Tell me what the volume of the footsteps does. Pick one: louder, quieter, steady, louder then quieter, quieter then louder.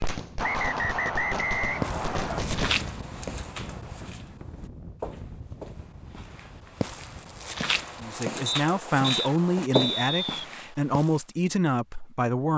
quieter then louder.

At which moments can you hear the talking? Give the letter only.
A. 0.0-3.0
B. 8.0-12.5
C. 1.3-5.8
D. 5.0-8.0
B.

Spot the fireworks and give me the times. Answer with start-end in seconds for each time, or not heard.
0.0-3.0.